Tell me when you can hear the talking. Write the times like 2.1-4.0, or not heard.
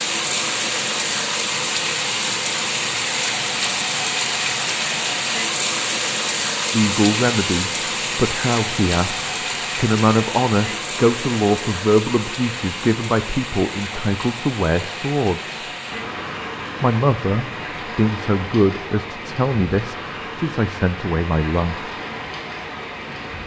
6.7-15.7, 16.8-21.9.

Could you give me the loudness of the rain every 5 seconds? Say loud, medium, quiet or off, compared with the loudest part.
loud, loud, medium, medium, medium.